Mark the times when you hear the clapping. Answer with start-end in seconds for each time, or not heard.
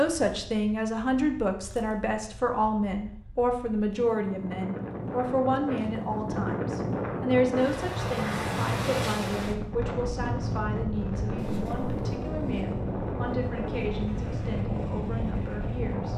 not heard.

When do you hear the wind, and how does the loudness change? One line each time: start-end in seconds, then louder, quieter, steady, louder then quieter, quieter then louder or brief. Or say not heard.
0.0-16.1 louder.